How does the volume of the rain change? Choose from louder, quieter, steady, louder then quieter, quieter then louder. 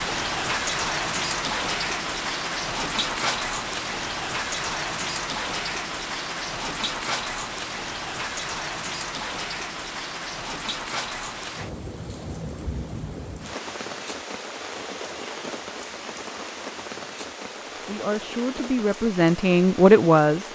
quieter.